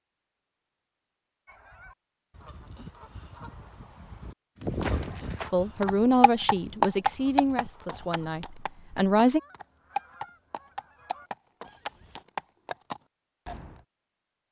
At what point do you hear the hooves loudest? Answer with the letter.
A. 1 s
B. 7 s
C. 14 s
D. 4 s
B.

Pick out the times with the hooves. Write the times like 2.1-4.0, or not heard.
4.6-13.8.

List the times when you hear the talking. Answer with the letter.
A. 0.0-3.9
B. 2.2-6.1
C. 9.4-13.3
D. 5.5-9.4
D.